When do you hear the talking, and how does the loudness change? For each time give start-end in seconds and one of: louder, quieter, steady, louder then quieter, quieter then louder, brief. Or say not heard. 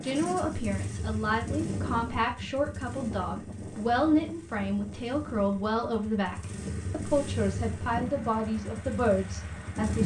0.0-10.0 steady.